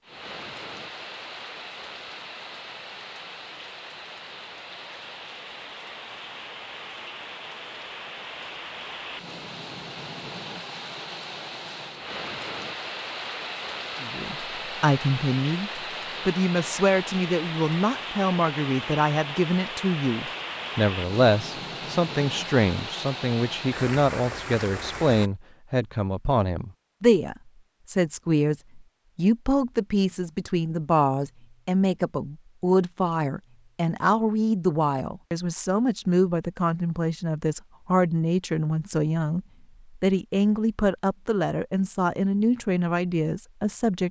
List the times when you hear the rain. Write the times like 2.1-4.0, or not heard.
0.0-25.3.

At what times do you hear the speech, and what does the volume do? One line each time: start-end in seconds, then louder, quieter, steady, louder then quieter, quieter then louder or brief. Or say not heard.
14.0-44.0 steady.